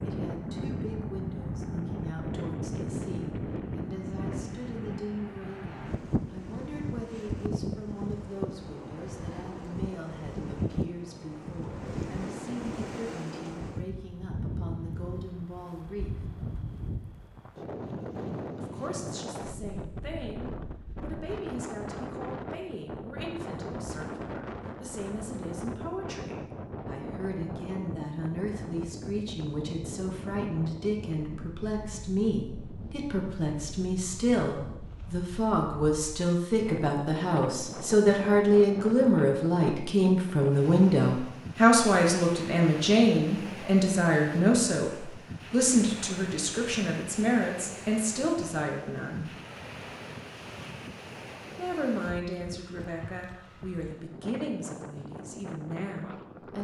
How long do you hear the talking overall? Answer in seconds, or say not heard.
52 s.